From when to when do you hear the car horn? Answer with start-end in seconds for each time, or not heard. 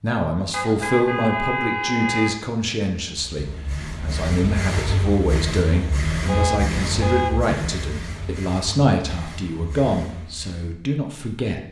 0.5-2.4, 6.2-7.3.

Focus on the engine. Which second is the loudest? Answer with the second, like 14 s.
6 s.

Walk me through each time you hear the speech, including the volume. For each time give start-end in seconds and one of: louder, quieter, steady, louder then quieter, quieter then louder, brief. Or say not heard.
0.0-11.6 steady.